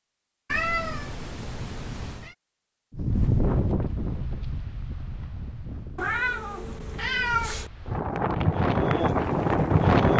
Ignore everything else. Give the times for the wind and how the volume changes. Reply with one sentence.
You can hear the wind from 2.9 to 10.1 s, getting quieter then louder.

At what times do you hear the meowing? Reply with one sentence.
The meowing can be heard from 0.5 to 2.4 s and from 6.0 to 7.7 s.